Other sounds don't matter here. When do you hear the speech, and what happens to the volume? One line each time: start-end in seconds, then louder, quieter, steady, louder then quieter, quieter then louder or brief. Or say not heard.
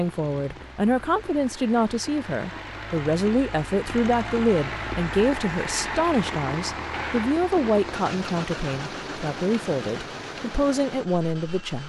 0.0-11.8 steady.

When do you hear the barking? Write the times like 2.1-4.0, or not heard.
not heard.